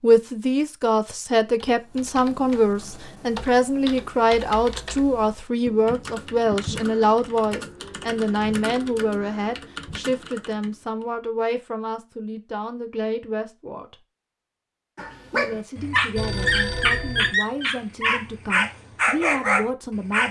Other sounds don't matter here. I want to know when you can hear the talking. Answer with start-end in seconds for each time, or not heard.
0.0-14.0, 15.3-20.2.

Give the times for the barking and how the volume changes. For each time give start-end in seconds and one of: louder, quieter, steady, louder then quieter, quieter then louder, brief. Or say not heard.
14.9-20.2 steady.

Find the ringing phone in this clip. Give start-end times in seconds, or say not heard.
16.1-17.4.